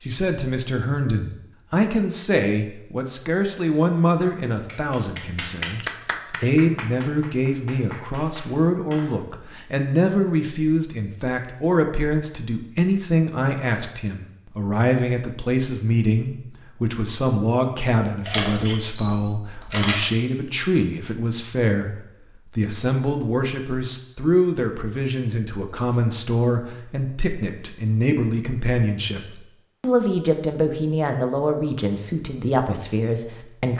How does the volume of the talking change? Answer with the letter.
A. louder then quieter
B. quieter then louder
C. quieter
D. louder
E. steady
E.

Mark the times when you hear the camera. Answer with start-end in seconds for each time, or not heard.
18.2-20.0.